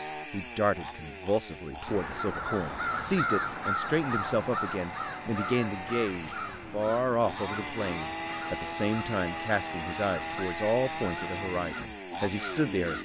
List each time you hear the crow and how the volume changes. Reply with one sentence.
You can hear the crow from 1.9 to 13.0 s, getting quieter.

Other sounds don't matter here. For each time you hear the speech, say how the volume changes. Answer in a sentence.
The speech can be heard from 0.0 to 13.0 s, at a steady volume.